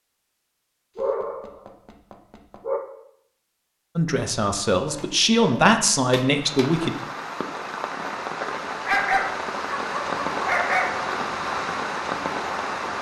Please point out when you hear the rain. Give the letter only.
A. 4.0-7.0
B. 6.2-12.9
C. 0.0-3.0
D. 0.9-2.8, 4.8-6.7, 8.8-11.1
B.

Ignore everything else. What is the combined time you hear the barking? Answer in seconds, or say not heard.
6 s.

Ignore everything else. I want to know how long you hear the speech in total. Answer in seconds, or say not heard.
3 s.